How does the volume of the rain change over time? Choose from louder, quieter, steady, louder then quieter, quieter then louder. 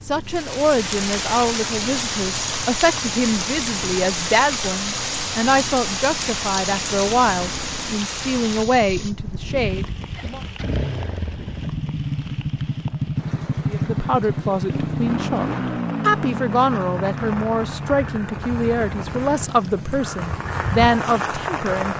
quieter then louder.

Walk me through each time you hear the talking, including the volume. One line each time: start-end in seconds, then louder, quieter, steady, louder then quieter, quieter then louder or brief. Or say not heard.
0.1-10.4 steady
13.7-21.9 steady.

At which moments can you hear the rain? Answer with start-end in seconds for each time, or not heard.
0.0-21.9.